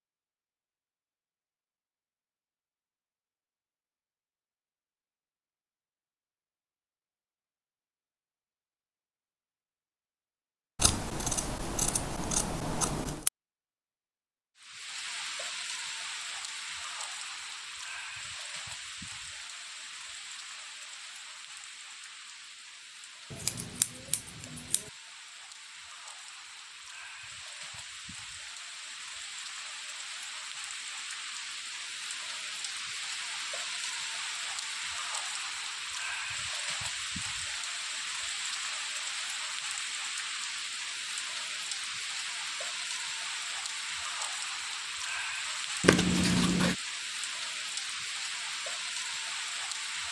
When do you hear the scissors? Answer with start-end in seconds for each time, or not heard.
10.8-13.3, 23.3-24.9, 45.8-46.8.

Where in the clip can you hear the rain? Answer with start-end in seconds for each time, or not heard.
14.6-50.0.